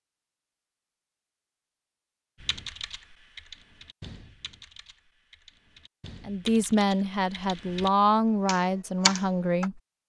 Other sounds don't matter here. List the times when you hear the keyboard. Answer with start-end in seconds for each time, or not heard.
2.4-9.7.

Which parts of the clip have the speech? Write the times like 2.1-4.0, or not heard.
6.2-9.8.